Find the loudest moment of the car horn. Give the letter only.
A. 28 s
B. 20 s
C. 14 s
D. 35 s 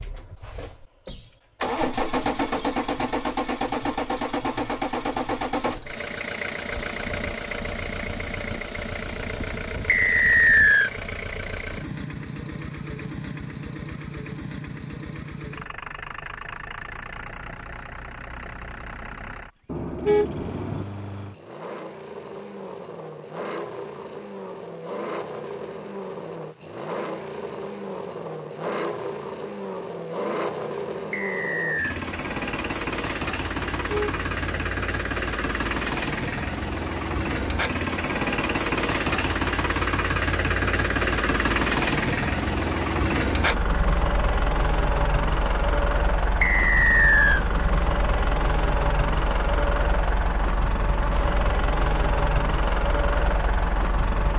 B.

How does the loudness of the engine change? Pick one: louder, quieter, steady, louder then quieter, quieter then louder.
quieter then louder.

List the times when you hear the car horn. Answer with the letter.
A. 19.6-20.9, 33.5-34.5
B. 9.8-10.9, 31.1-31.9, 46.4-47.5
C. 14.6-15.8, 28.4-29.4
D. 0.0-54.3
A.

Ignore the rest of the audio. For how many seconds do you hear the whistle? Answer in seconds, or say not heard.
3 s.